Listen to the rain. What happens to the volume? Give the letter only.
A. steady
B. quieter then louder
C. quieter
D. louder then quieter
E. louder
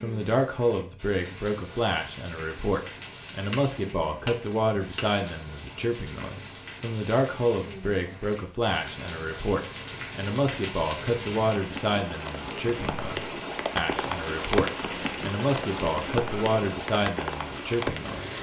E.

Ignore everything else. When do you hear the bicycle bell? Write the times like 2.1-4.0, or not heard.
3.5-5.1.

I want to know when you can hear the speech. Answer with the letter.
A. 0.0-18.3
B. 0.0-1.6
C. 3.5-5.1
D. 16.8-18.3
A.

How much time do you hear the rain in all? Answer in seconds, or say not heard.
18 s.